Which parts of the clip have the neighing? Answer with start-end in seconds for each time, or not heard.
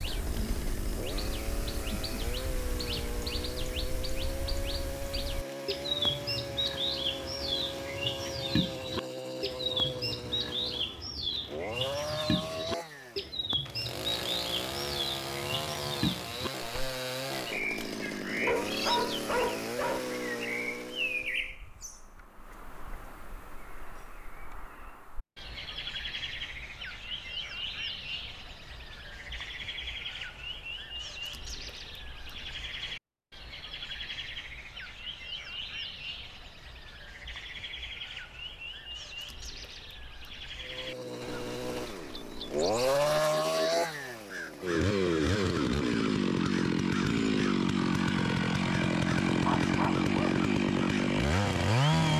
not heard.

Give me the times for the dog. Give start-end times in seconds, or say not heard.
18.4-20.1, 49.4-50.4.